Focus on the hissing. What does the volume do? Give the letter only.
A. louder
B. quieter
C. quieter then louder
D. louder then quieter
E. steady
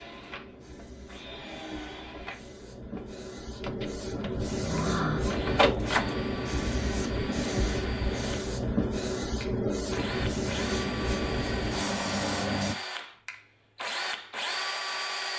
A.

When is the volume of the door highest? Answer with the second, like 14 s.
6 s.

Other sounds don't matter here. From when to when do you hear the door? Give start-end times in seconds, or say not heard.
3.6-6.2.